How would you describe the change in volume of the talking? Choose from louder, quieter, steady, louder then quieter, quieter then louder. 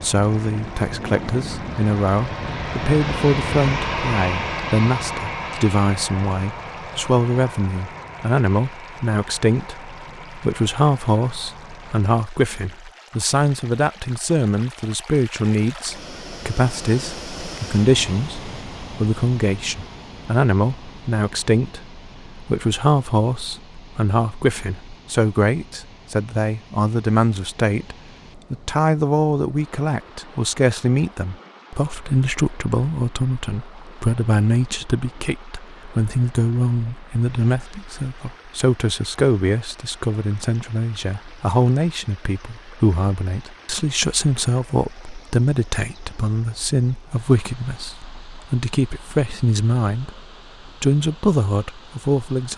steady.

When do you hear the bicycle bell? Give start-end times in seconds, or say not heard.
not heard.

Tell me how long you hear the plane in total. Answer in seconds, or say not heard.
12 s.